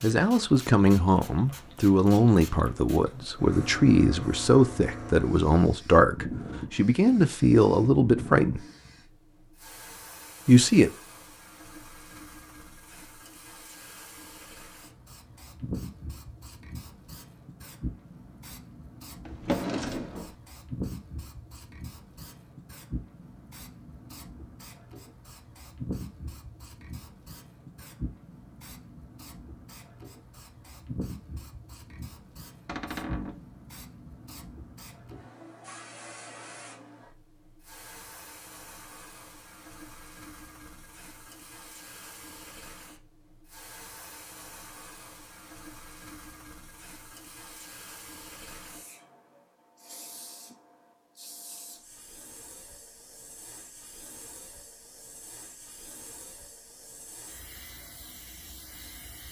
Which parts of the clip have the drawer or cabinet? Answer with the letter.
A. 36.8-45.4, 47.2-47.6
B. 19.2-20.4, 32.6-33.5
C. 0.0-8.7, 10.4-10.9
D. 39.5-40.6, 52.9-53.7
B.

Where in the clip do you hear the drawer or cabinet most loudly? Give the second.
20 s.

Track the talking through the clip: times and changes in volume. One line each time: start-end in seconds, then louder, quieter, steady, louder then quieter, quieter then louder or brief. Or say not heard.
0.0-8.7 steady
10.4-10.9 brief.